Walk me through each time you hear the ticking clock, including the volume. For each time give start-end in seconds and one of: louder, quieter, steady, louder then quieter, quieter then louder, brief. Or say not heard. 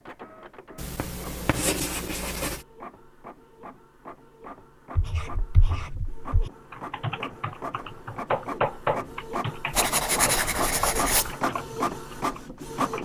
not heard.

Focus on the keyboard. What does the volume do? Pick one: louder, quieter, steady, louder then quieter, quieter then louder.
louder then quieter.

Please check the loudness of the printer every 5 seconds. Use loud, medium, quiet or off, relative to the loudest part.
quiet, medium, loud.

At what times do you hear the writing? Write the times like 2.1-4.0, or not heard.
0.8-2.6, 5.0-6.5, 9.7-11.3.